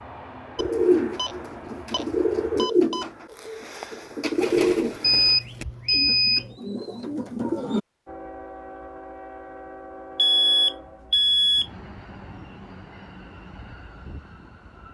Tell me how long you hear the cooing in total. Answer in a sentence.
The cooing can be heard for 7 seconds in total.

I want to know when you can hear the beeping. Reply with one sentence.
The beeping can be heard from 0.6 to 3.0 s, from 5.0 to 6.5 s and from 10.2 to 11.7 s.